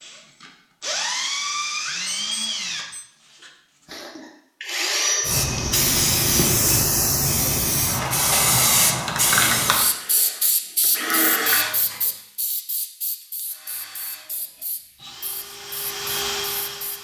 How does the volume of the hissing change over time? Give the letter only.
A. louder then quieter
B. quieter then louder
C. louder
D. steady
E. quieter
E.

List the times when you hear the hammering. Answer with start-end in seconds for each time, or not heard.
not heard.